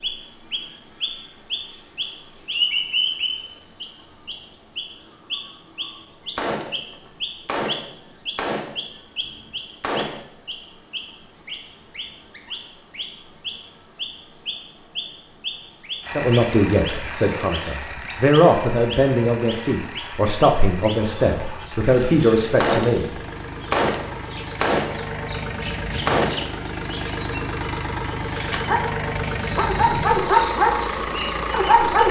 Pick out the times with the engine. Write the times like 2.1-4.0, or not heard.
16.0-32.0.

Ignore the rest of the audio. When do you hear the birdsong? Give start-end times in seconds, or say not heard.
0.0-32.0.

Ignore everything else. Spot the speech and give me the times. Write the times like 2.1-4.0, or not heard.
16.1-23.1.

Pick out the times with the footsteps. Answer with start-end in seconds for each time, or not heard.
not heard.